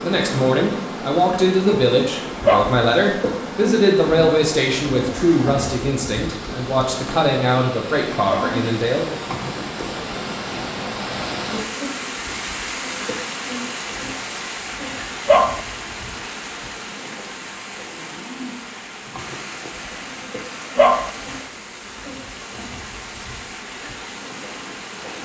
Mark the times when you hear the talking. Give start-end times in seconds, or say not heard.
0.0-9.2.